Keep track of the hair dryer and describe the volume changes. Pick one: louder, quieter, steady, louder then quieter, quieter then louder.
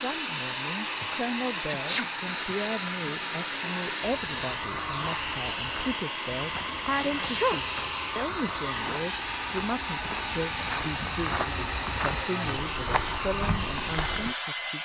steady.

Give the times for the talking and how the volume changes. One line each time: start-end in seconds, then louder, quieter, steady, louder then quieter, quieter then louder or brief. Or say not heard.
0.0-14.8 steady.